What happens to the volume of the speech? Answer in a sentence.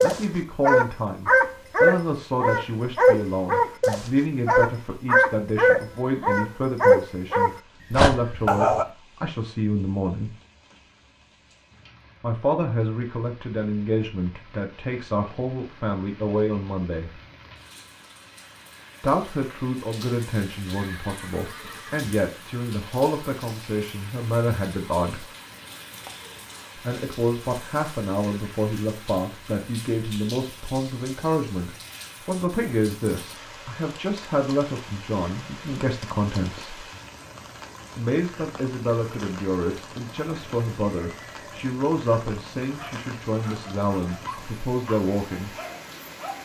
The volume of the speech stays about the same.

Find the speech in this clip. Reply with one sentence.
The speech can be heard from 0.0 to 10.3 s, from 12.2 to 17.1 s, from 19.0 to 25.2 s, from 26.8 to 36.9 s and from 38.0 to 45.5 s.